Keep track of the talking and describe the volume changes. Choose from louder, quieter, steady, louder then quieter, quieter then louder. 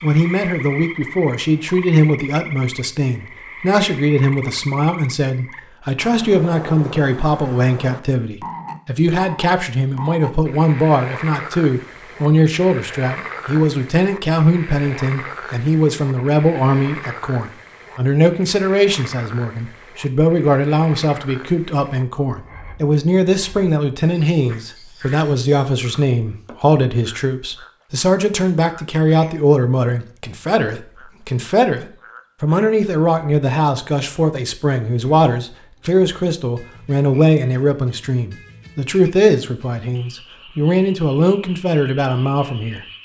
steady.